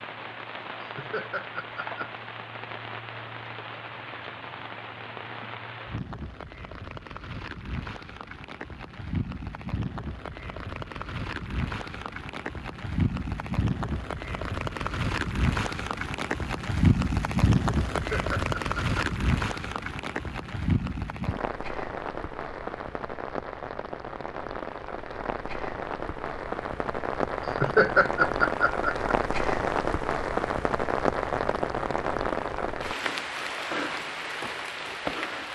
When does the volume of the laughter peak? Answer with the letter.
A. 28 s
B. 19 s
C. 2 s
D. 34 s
A.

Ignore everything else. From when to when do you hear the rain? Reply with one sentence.
The rain can be heard from 0.0 to 35.5 s.